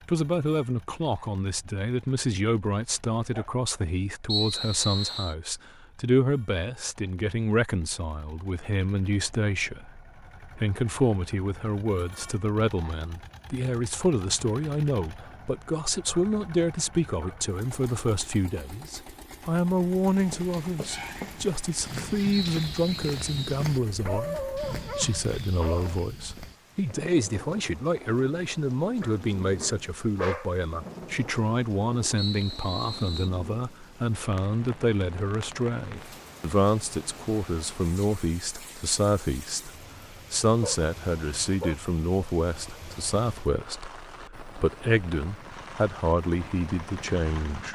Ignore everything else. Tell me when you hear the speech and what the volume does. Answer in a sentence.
You can hear the speech from 0.1 to 47.7 s, at a steady volume.